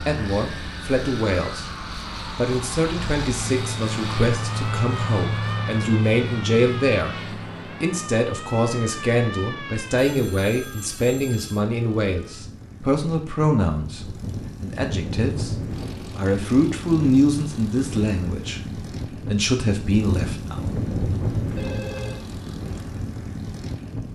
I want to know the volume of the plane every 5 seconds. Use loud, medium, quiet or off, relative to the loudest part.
loud, loud, medium, loud, loud.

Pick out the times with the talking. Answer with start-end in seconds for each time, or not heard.
0.0-20.6.